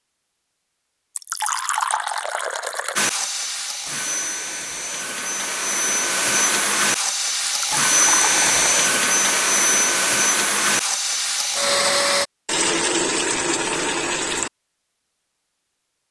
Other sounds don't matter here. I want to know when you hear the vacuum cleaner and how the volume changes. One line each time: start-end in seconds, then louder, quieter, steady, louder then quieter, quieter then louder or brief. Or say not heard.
3.0-12.2 louder.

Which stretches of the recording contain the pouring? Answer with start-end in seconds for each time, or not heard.
1.1-3.0, 7.6-8.6, 12.4-14.5.